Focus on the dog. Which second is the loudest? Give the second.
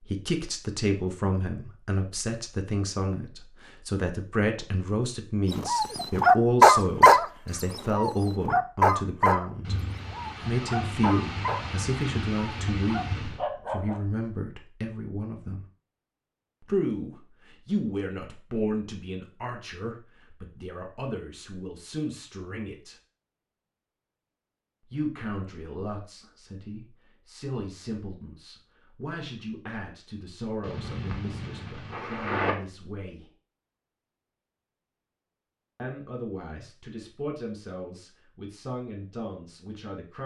7 s.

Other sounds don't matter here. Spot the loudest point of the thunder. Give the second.
32 s.